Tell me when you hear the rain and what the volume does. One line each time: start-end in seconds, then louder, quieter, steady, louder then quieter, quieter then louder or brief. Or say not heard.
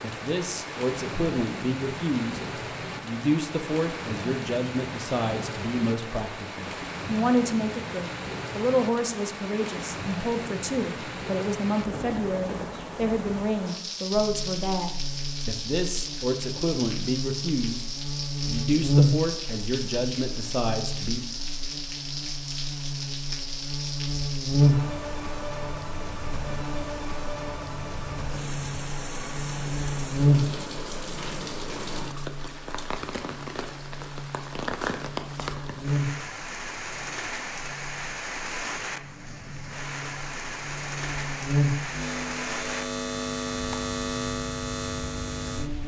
0.0-45.8 steady.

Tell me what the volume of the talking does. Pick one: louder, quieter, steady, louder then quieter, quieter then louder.
steady.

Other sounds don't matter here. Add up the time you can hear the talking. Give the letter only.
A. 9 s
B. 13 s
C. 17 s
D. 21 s
D.